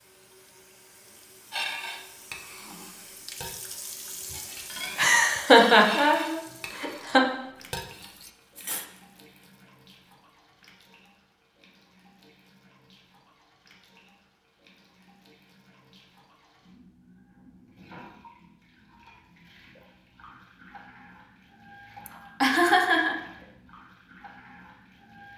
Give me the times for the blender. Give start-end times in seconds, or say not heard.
not heard.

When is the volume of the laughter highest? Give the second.
6 s.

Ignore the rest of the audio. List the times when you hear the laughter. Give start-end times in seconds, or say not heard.
5.0-7.2, 22.1-23.1.